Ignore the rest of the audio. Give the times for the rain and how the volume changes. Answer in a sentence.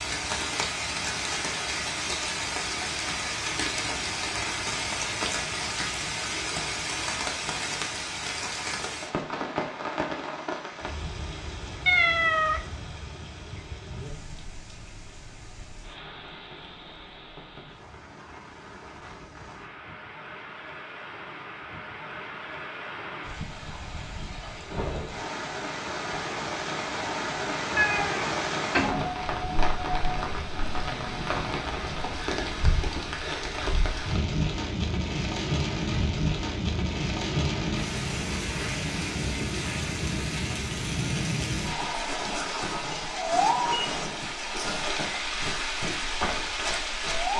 You can hear the rain from 0.0 to 47.3 s, getting quieter then louder.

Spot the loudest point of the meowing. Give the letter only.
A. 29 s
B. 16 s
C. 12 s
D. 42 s
C.